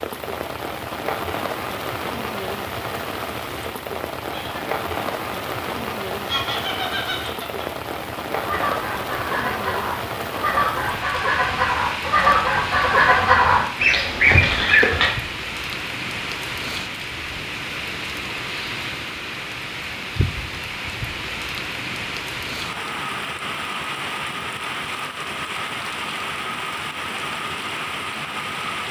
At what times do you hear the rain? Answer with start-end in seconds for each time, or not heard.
0.0-28.8.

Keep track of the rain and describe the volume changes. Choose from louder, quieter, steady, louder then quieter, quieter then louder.
steady.